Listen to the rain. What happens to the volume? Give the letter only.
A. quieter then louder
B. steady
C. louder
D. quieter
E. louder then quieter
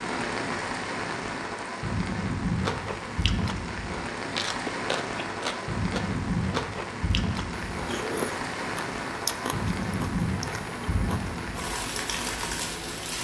B.